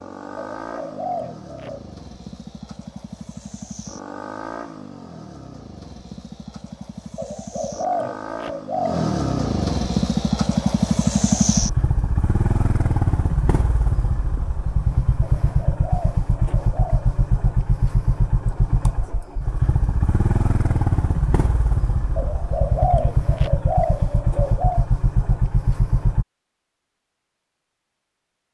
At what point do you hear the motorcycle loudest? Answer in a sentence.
The loudest moment of the motorcycle is at 11 seconds.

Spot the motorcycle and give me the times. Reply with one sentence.
The motorcycle can be heard from 0.0 to 26.2 s.